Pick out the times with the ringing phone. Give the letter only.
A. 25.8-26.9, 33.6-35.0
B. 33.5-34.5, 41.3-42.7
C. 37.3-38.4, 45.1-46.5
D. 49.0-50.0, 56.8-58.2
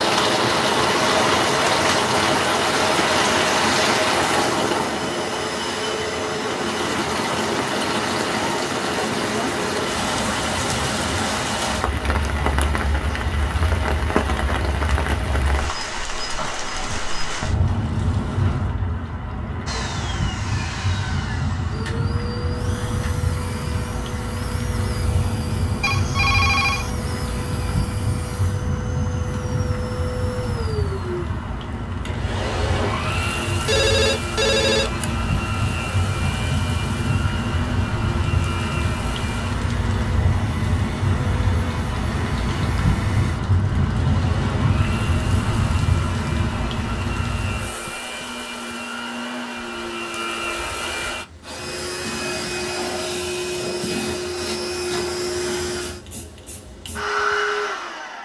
A.